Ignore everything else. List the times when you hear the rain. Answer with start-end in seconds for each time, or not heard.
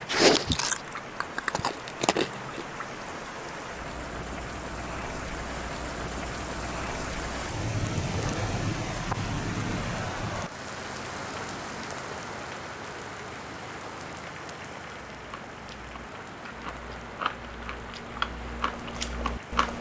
0.0-19.7.